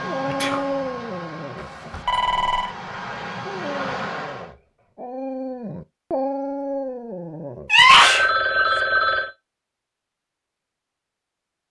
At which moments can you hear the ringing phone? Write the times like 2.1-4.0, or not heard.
1.6-2.8, 8.0-9.3.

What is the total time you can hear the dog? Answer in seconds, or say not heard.
7 s.